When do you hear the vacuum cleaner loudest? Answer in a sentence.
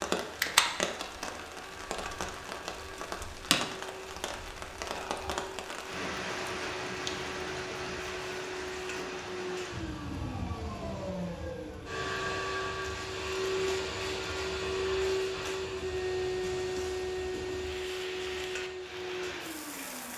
The volume of the vacuum cleaner peaks at 15 seconds.